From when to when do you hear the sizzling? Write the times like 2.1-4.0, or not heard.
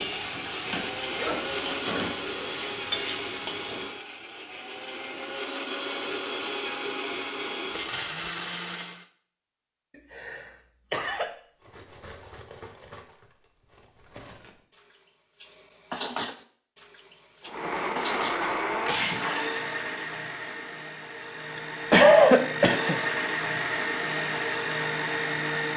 0.0-3.9.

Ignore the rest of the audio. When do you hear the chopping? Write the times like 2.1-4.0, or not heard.
not heard.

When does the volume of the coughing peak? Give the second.
22 s.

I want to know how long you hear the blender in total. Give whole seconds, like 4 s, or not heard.
17 s.